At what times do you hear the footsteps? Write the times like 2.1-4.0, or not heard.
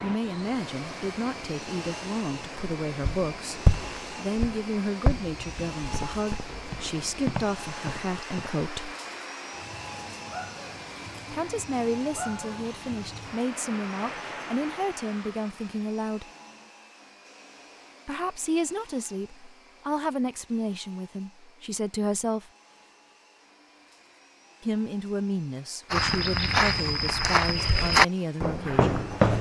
3.0-8.5, 25.9-29.3.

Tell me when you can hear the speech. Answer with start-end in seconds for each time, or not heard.
0.0-8.9, 11.3-16.2, 18.1-22.5, 24.6-29.1.